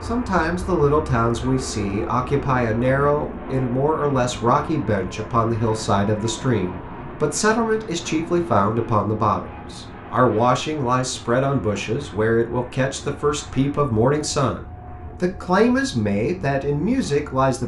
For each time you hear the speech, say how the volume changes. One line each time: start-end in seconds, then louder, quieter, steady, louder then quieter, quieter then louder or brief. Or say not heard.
0.0-14.6 steady
15.2-17.6 brief.